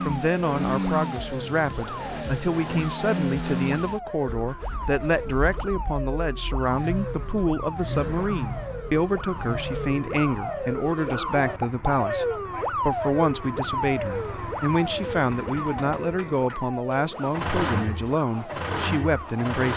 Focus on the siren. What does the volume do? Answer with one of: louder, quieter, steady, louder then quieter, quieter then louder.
louder then quieter.